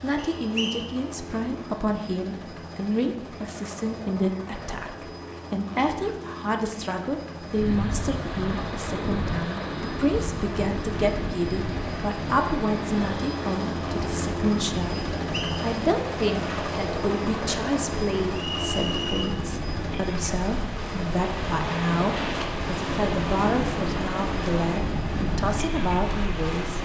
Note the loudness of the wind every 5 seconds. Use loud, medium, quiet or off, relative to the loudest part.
off, loud, medium, medium, loud, loud.